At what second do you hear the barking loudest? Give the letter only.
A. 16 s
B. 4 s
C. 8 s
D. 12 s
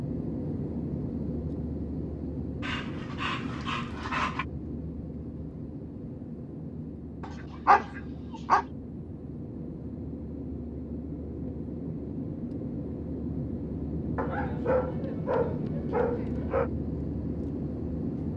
C.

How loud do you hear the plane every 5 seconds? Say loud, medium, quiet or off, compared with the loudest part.
loud, medium, loud, loud.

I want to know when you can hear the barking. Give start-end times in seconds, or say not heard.
2.6-4.5, 7.2-8.7, 14.2-16.7.